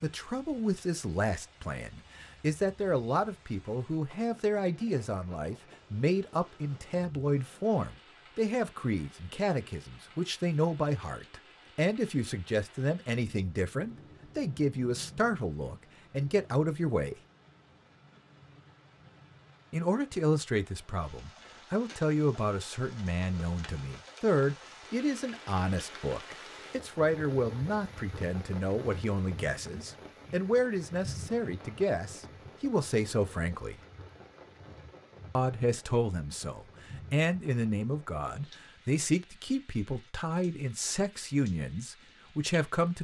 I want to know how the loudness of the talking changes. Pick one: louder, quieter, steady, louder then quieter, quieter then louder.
steady.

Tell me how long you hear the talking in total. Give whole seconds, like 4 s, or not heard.
39 s.